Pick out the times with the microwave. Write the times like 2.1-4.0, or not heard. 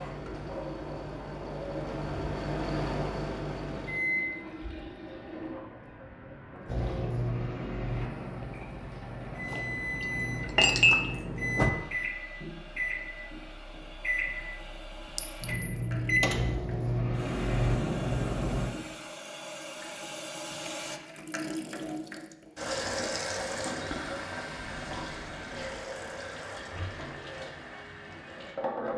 0.0-4.3, 6.7-18.7.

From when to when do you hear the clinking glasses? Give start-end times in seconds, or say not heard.
9.5-11.2, 15.2-15.8.